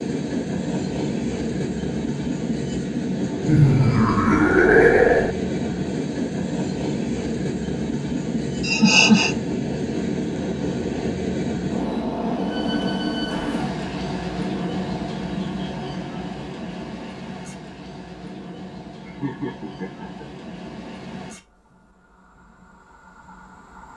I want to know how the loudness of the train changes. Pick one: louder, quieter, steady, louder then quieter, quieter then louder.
quieter.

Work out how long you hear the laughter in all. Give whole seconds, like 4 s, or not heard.
4 s.